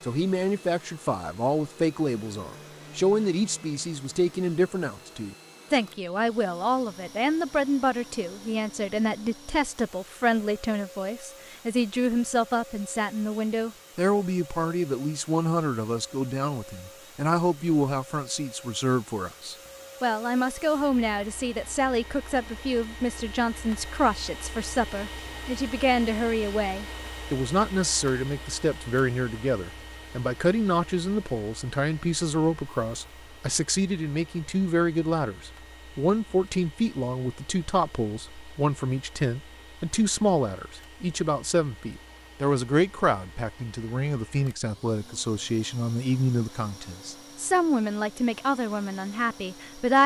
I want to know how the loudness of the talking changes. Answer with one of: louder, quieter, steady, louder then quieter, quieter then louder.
steady.